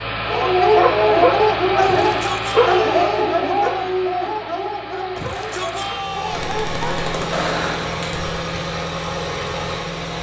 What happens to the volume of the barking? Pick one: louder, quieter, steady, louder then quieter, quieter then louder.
quieter.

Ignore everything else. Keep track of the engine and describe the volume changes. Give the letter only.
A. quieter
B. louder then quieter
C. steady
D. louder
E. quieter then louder
E.